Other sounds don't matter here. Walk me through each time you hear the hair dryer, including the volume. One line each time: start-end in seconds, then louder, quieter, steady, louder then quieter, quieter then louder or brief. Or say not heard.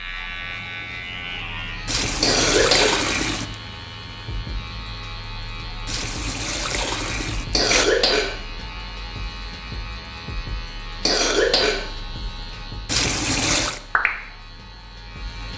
not heard.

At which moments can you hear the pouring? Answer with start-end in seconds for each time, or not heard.
1.9-3.5, 5.8-7.8, 12.8-13.8.